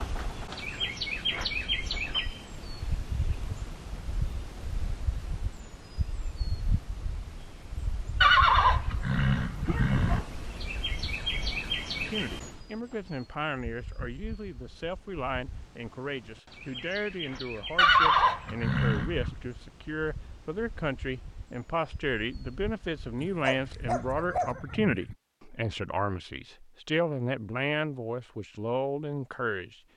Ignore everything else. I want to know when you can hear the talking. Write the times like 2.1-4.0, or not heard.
11.9-29.8.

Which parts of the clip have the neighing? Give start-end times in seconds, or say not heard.
8.2-10.2, 17.8-19.4.